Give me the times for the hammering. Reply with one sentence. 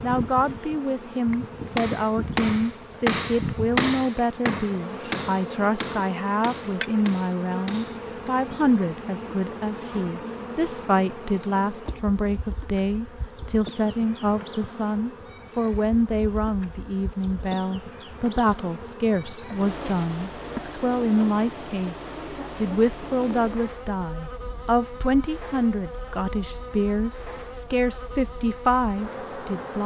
You can hear the hammering from 1.3 to 8.3 s.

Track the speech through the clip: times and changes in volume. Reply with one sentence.
The speech can be heard from 0.0 to 29.8 s, at a steady volume.